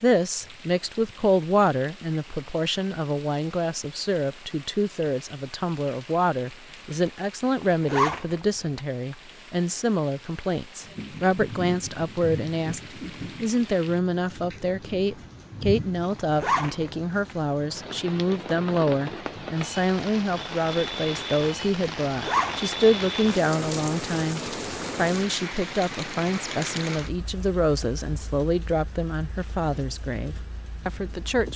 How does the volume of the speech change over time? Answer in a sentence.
The volume of the speech stays about the same.